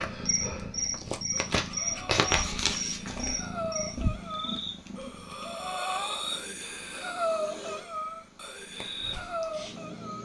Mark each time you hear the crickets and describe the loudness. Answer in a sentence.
The crickets can be heard from 0.2 to 10.1 s, getting quieter.